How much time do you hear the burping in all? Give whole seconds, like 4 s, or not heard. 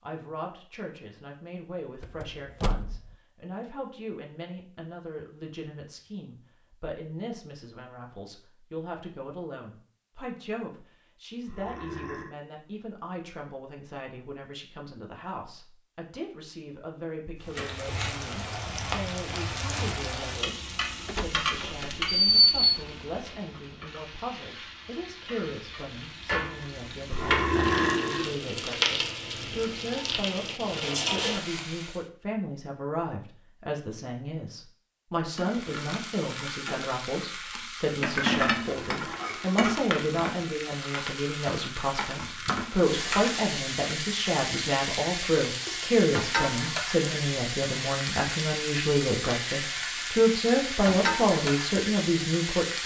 3 s.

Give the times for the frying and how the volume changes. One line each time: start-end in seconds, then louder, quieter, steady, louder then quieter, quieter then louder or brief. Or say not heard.
17.4-32.0 quieter then louder
35.4-52.8 steady.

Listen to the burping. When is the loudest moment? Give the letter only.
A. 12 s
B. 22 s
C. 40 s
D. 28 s
D.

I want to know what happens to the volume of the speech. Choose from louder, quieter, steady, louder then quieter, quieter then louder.
louder.